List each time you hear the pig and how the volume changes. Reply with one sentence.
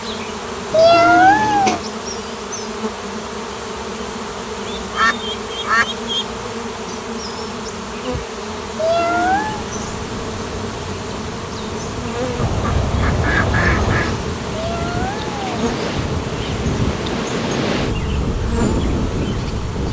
You can't hear the pig here.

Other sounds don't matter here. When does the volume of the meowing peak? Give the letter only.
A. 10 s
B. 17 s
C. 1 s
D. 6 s
C.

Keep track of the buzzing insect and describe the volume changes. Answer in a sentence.
The volume of the buzzing insect stays about the same.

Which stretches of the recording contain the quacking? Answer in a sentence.
The quacking can be heard from 4.8 to 6.2 s and from 12.3 to 14.2 s.